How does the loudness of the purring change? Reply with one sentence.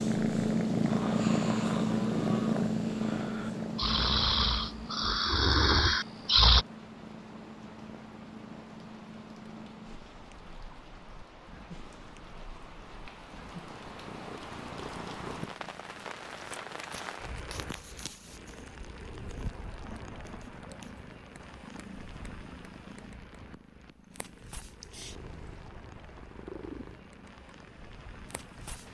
The volume of the purring goes down.